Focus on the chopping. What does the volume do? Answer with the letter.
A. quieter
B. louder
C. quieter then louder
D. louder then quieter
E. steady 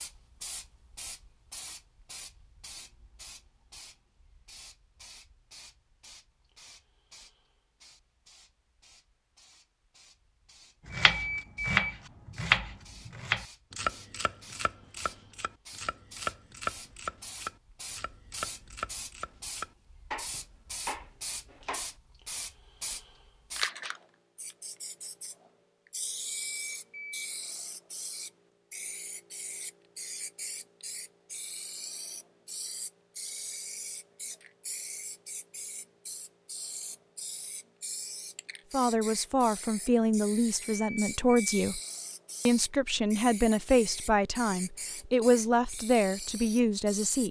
A.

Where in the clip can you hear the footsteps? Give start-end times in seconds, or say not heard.
not heard.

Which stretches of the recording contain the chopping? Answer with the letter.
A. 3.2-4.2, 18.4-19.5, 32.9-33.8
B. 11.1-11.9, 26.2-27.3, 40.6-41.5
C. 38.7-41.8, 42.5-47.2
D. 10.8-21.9
D.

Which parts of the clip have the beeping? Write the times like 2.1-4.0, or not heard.
11.1-11.9, 26.2-27.3, 40.6-41.5.